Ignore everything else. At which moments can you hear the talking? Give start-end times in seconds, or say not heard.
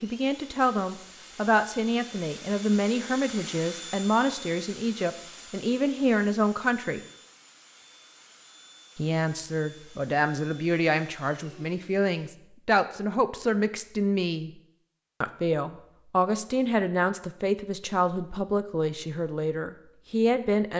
0.0-7.0, 8.9-14.5, 15.2-20.7.